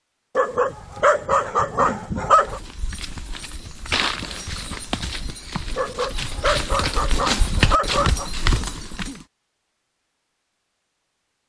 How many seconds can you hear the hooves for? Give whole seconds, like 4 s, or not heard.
7 s.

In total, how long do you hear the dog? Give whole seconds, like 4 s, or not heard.
5 s.